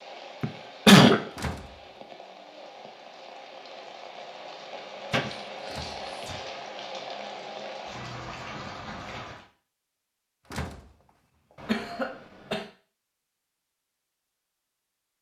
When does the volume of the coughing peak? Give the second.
1 s.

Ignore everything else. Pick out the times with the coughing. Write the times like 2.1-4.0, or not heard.
0.4-1.2, 5.1-6.5, 11.6-12.7.